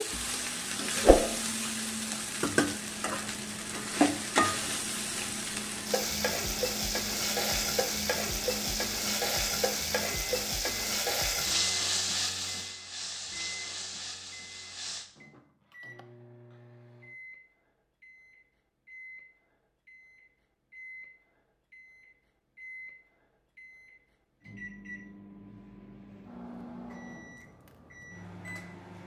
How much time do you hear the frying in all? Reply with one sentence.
You can hear the frying for 15 seconds altogether.